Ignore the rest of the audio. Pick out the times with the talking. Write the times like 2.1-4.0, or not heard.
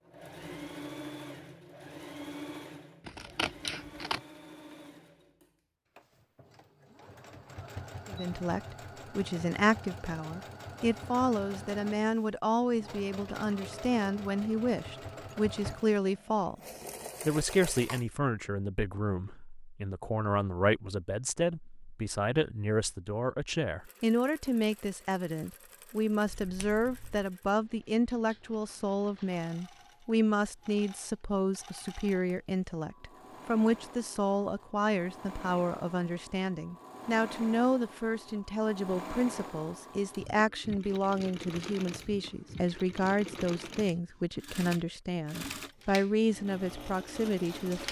8.1-16.6, 17.2-47.8.